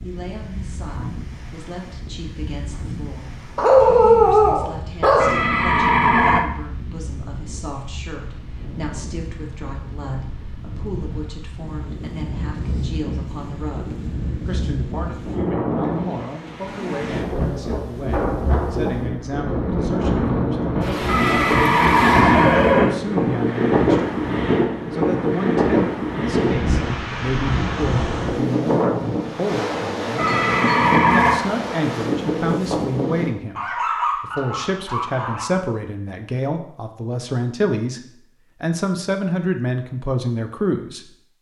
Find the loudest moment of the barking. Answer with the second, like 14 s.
4 s.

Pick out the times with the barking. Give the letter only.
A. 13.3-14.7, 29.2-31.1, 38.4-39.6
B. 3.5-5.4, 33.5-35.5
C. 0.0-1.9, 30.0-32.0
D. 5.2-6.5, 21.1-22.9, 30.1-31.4
B.